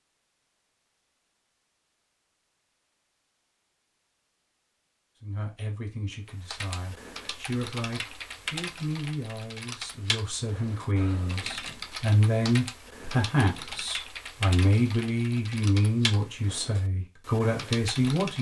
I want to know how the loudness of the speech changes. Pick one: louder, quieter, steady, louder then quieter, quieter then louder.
louder.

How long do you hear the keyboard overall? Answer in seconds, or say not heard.
12 s.